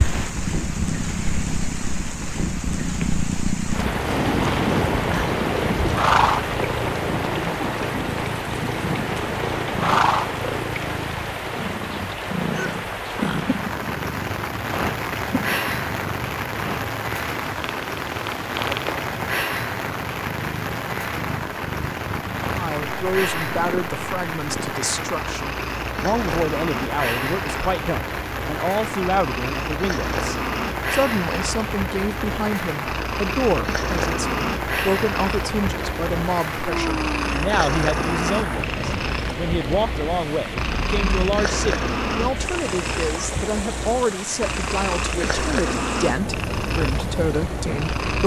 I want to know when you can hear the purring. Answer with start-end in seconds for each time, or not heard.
0.0-48.2.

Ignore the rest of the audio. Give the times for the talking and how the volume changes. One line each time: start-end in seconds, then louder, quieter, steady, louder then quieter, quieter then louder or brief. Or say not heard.
22.5-48.2 steady.